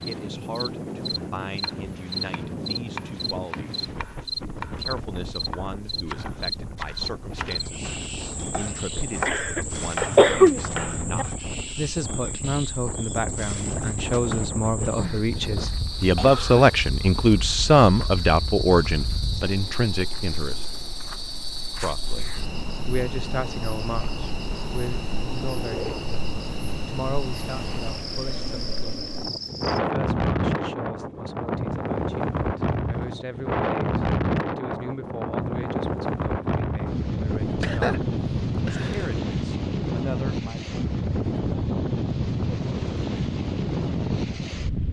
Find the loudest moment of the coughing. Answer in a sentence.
The loudest moment of the coughing is at 10 seconds.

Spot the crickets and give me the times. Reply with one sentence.
You can hear the crickets from 0.0 to 29.8 s.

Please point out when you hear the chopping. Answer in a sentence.
You can hear the chopping from 1.1 to 11.3 s.